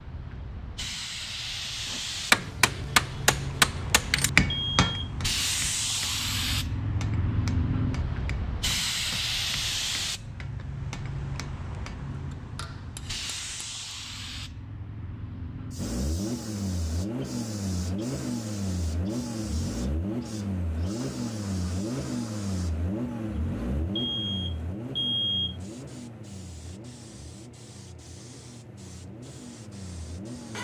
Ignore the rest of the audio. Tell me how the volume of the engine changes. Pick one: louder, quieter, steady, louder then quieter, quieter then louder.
quieter.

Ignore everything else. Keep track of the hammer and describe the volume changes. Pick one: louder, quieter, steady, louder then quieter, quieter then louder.
quieter.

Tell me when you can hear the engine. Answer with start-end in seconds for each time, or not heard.
15.8-30.5.